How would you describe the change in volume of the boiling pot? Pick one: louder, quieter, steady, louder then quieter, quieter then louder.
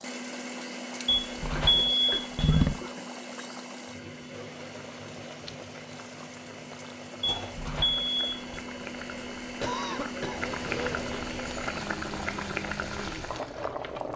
louder.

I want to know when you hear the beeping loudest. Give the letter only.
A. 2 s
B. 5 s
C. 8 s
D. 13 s
A.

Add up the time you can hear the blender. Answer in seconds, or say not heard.
14 s.